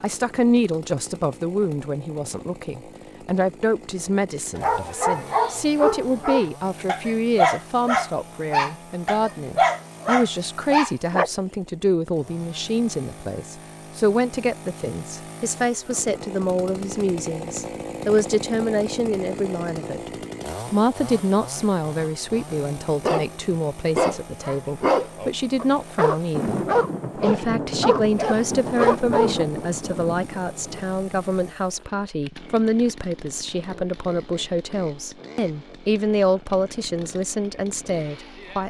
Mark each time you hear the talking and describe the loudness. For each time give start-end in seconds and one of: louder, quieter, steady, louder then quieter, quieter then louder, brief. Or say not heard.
0.0-20.1 steady
20.7-38.6 steady.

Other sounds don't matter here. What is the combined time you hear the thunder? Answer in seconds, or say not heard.
5 s.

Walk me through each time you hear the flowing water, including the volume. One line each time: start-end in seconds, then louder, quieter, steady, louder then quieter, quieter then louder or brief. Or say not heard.
not heard.